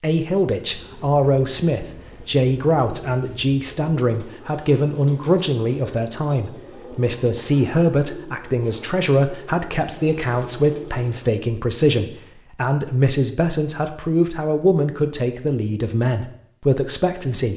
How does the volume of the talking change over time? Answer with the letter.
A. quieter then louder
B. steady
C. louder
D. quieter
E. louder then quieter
B.